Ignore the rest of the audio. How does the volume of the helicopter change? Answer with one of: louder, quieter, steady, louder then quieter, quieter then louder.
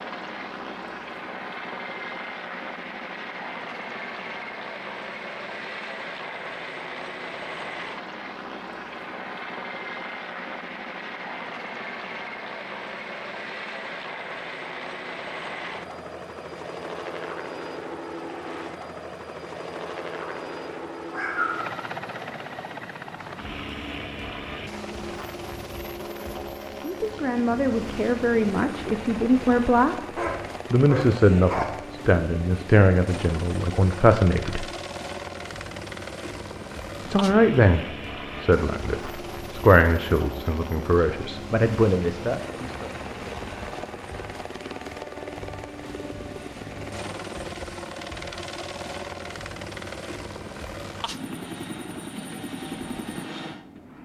steady.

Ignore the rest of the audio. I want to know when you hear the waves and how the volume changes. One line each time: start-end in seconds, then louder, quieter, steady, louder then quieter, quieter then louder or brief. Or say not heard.
not heard.